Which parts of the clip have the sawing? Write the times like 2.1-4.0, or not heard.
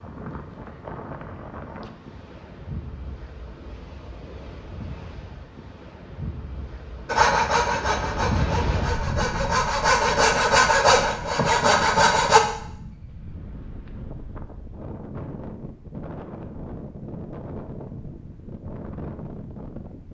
7.0-12.4.